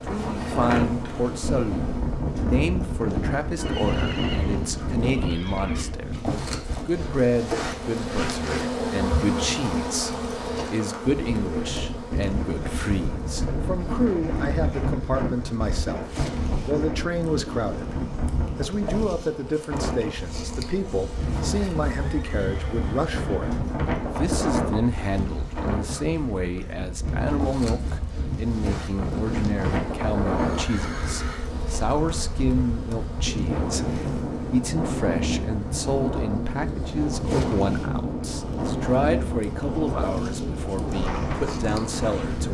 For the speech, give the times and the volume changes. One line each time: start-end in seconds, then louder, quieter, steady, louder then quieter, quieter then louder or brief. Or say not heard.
0.1-16.1 steady
16.6-17.9 brief
18.6-42.5 steady.